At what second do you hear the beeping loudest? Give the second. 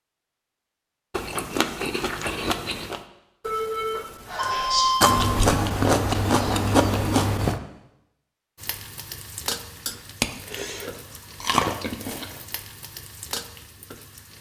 5 s.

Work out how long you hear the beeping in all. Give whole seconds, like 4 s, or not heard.
2 s.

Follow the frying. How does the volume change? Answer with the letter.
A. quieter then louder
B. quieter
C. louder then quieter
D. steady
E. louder
A.